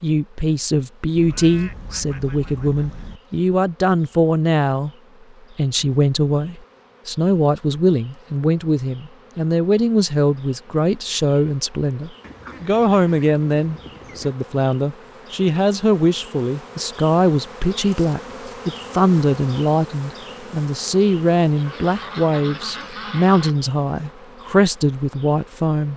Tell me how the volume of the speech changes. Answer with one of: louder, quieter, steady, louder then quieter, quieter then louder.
steady.